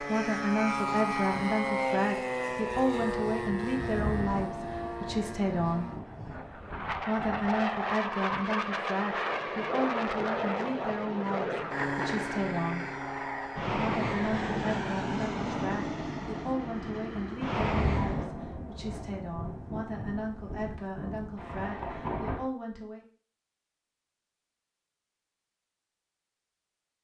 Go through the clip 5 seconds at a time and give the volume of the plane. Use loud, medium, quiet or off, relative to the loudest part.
loud, loud, loud, loud, off, off.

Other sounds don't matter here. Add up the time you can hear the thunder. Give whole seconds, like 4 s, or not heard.
9 s.